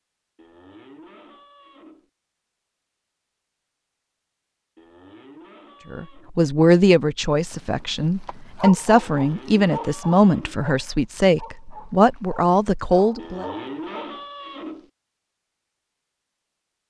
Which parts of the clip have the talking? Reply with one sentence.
The talking can be heard from 5.9 to 13.4 s.